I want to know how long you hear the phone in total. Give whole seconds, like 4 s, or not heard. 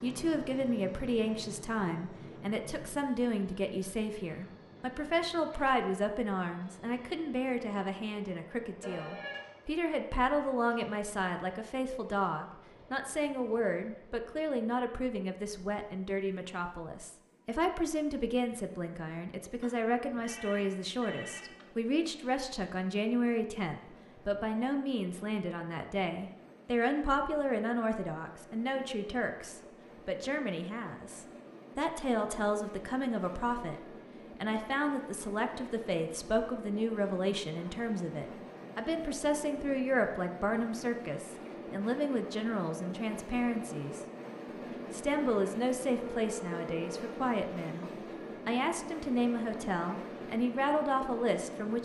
4 s.